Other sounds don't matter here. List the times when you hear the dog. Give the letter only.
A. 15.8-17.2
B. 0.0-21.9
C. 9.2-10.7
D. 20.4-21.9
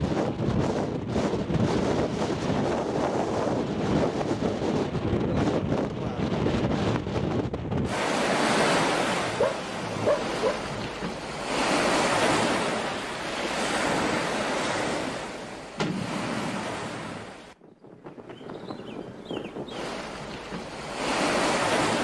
C.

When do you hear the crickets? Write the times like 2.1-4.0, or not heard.
not heard.